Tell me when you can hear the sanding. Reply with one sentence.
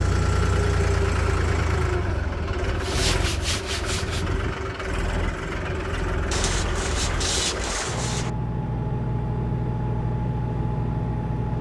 The sanding can be heard from 2.6 to 4.2 s and from 6.3 to 8.3 s.